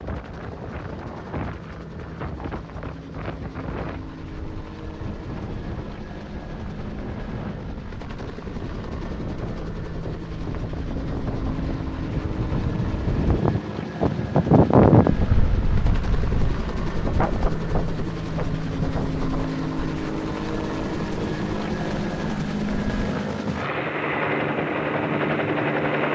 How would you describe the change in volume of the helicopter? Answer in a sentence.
The loudness of the helicopter goes up.